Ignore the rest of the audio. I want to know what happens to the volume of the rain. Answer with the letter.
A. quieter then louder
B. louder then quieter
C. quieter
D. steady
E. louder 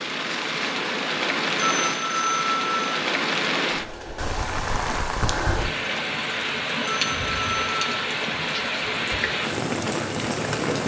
D.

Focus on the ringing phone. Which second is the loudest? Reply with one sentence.
The loudest moment of the ringing phone is at 2 seconds.